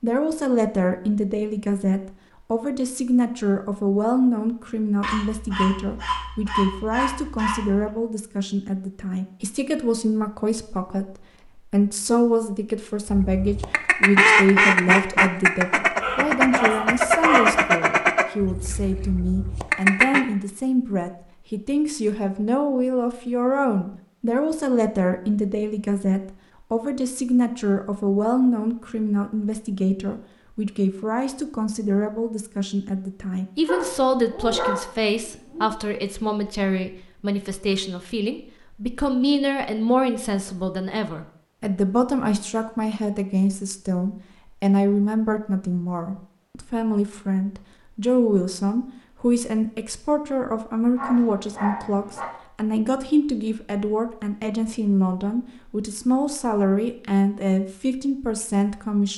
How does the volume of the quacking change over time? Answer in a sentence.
The volume of the quacking goes down.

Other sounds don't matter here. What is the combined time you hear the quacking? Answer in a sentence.
The quacking can be heard for 7 seconds in total.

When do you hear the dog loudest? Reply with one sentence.
The loudest moment of the dog is at 17 seconds.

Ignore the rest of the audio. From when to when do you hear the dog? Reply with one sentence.
The dog can be heard from 5.0 to 7.9 s, from 16.0 to 17.7 s, from 33.6 to 35.7 s and from 51.0 to 52.2 s.